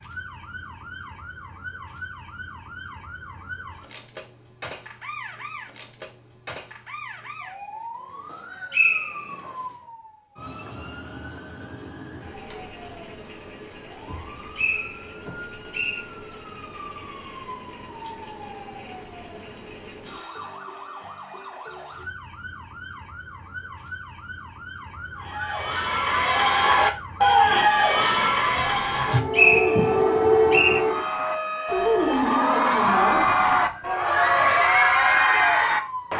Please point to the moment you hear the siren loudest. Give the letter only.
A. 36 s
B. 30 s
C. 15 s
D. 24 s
B.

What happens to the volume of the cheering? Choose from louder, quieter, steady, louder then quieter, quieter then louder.
quieter then louder.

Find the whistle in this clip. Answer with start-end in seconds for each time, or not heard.
8.3-9.5, 14.6-16.1, 29.3-30.8.